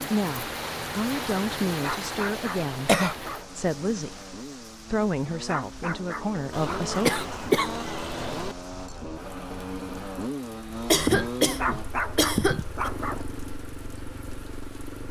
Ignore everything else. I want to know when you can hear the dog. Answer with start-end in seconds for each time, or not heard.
1.8-3.5, 5.5-7.1, 11.6-13.2.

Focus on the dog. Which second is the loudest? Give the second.
12 s.